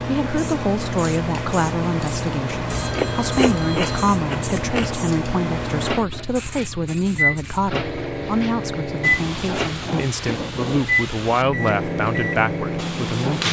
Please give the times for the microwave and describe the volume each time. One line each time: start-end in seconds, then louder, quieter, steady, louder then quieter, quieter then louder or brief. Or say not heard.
0.0-13.4 steady.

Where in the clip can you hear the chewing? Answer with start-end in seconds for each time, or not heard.
2.8-5.0.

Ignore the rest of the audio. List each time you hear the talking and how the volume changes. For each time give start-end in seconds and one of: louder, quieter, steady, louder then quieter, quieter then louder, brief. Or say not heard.
0.1-13.4 steady.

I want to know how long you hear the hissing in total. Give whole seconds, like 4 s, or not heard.
13 s.